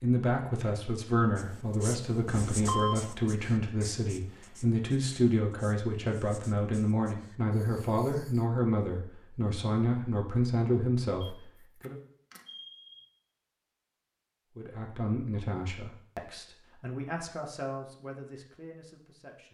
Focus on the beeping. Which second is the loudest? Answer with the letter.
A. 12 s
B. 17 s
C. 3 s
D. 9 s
C.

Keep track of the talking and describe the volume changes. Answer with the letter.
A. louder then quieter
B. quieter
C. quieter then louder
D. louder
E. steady
B.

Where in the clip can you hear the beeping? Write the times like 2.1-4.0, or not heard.
2.5-3.1, 11.2-13.1.